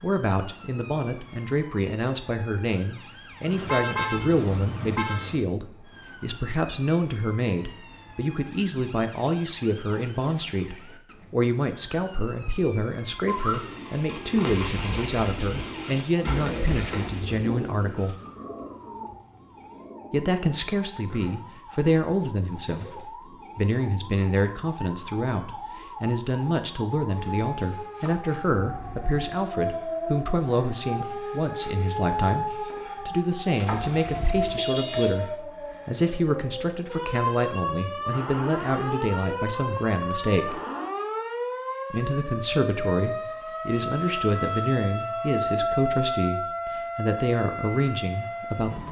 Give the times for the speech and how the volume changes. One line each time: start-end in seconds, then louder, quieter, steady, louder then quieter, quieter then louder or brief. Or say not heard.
0.0-18.1 steady
20.1-40.6 steady
41.9-48.8 steady.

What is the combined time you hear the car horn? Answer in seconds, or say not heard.
4 s.